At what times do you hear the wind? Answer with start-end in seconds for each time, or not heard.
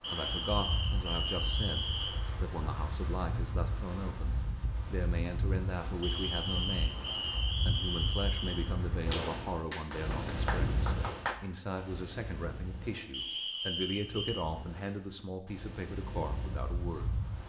0.0-17.4.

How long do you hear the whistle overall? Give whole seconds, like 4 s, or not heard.
6 s.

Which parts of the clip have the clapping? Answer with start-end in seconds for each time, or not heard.
9.1-11.4.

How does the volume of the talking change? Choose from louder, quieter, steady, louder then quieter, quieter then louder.
steady.